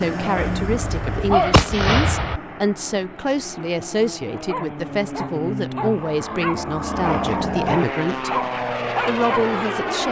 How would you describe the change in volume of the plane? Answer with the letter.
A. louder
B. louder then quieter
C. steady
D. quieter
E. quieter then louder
E.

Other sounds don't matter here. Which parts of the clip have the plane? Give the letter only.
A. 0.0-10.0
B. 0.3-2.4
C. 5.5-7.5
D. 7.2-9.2
A.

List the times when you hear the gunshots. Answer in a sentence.
The gunshots can be heard from 0.3 to 2.4 s.